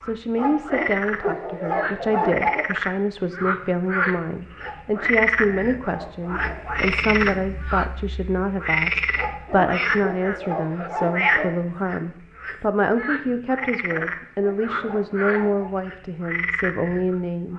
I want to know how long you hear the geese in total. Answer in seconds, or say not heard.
not heard.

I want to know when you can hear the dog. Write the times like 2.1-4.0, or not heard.
0.3-2.6, 4.5-7.0, 9.2-11.5, 13.5-15.7.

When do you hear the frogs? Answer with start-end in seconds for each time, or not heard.
0.0-17.5.